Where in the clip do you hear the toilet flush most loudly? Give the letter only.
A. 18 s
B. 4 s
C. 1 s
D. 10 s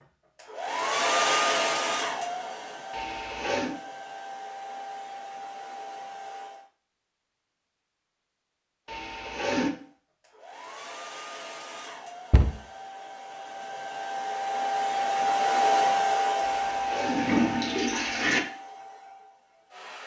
A.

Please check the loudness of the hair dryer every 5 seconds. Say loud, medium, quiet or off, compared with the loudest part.
loud, quiet, medium, loud.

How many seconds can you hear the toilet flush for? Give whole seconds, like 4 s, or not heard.
4 s.